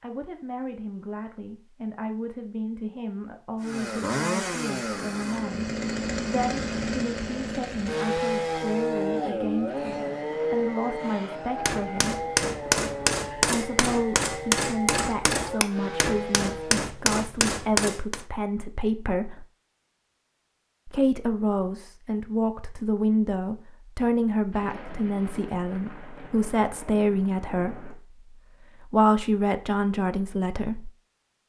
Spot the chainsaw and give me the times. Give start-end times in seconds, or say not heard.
3.6-16.9.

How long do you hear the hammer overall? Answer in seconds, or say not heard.
7 s.